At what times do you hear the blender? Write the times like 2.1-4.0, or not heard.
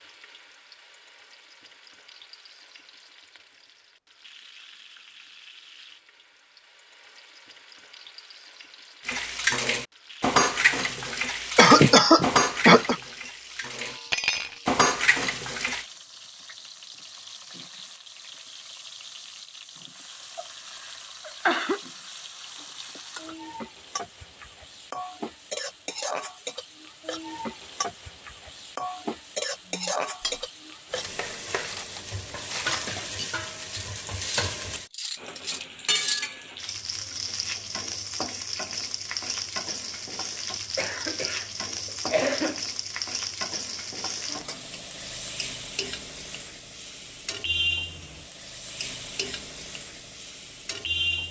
not heard.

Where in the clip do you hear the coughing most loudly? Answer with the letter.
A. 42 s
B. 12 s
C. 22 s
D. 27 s
B.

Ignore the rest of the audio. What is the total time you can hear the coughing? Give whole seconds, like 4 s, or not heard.
3 s.